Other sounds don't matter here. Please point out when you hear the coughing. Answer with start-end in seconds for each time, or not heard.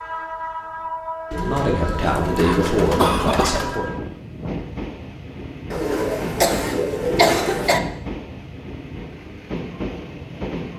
2.0-3.7, 5.8-7.8.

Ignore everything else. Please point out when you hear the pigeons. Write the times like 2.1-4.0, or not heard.
1.3-3.9, 5.7-7.7.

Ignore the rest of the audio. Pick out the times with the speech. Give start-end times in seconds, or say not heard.
1.4-3.9.